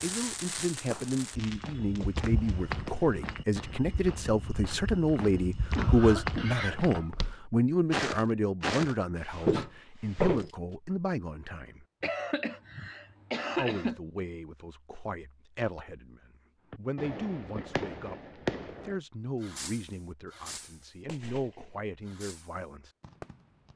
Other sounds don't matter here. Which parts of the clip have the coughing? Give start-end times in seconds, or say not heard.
5.7-7.2, 12.0-14.0.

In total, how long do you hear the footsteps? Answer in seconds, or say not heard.
9 s.